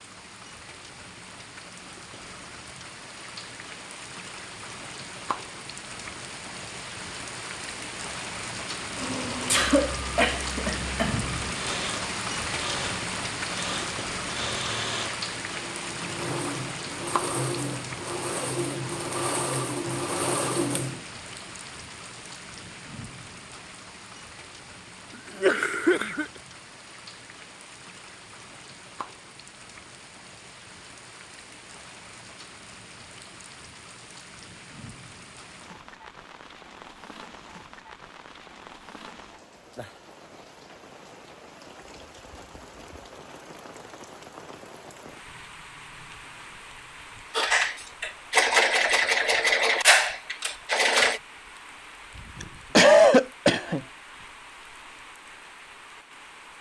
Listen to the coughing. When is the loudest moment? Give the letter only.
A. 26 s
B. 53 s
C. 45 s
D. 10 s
B.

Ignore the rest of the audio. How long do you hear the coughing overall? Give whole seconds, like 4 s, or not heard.
4 s.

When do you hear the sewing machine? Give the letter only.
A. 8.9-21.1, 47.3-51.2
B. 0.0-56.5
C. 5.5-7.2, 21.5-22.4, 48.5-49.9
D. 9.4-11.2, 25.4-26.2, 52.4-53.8
A.